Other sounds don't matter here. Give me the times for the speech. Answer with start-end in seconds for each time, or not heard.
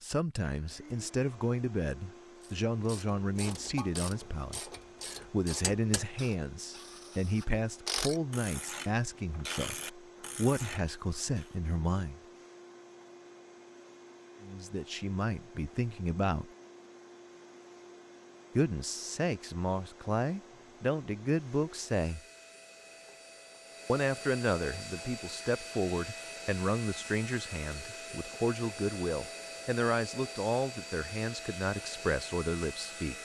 0.0-12.2, 14.4-16.5, 18.6-22.2, 23.9-33.1.